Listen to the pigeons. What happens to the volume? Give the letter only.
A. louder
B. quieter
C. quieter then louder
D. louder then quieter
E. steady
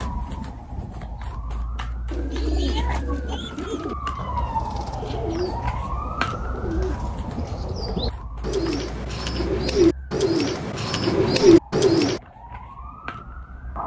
A.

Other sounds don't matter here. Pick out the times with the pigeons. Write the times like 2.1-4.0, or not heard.
2.1-12.2.